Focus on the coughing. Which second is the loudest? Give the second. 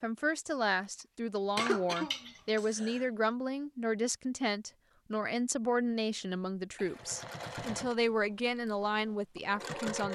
2 s.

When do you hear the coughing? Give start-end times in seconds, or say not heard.
1.6-3.0, 6.8-7.7.